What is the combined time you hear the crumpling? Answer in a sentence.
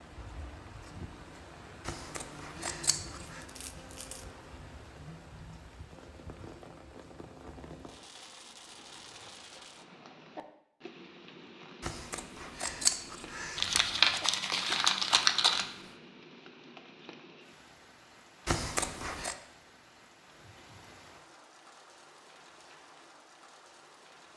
The crumpling can be heard for 3 seconds in total.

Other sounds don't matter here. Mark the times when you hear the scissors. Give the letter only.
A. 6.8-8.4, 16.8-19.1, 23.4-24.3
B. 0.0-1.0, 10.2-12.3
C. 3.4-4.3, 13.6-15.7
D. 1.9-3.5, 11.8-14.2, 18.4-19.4
D.